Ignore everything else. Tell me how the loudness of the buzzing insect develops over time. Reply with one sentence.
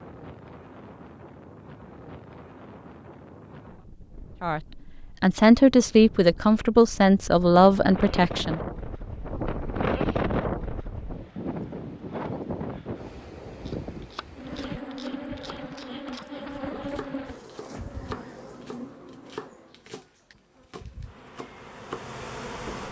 The loudness of the buzzing insect goes down, then up.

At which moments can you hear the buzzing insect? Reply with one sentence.
You can hear the buzzing insect from 14.3 to 22.8 s.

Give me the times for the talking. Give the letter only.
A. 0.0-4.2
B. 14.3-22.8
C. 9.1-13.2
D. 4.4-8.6
D.